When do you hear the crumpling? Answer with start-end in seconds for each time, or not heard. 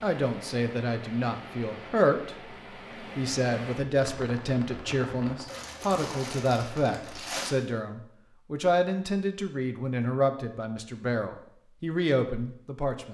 5.5-7.5.